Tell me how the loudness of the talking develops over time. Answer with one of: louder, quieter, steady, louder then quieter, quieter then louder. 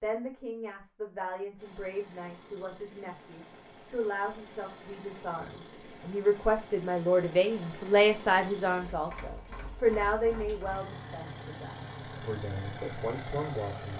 louder then quieter.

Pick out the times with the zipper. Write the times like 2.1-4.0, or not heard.
not heard.